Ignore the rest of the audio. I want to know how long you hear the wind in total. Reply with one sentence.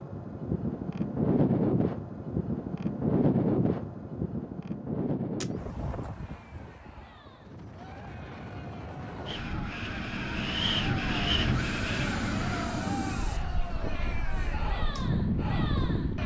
You can hear the wind for 16 seconds altogether.